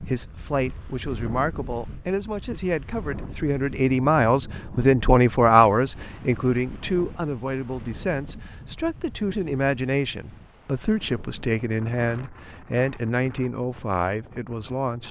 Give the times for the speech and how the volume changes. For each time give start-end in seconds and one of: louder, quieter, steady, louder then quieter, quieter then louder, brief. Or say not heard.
0.0-15.0 louder then quieter.